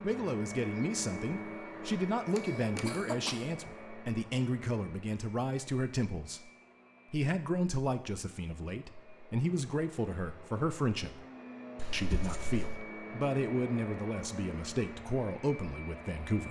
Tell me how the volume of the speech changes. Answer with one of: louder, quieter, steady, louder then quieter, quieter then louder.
steady.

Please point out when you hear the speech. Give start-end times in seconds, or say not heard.
0.0-6.5, 7.1-11.2, 11.9-16.4.